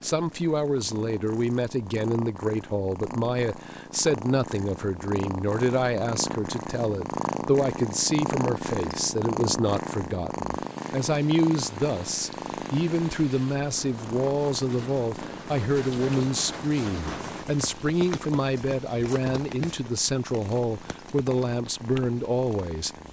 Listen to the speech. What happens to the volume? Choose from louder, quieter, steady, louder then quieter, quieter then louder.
steady.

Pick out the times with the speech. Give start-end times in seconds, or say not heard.
0.0-22.9.